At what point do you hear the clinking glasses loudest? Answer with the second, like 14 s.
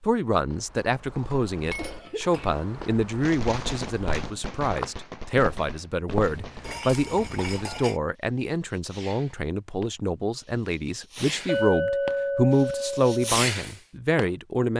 12 s.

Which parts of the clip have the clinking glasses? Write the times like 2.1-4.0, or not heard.
1.7-2.5, 6.4-8.0, 11.4-13.3.